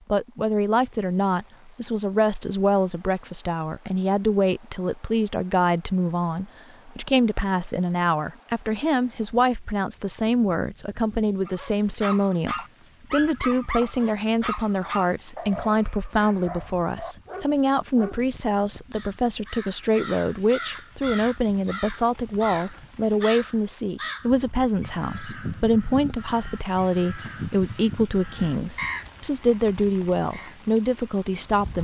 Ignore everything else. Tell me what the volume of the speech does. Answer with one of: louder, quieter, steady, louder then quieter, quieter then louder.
steady.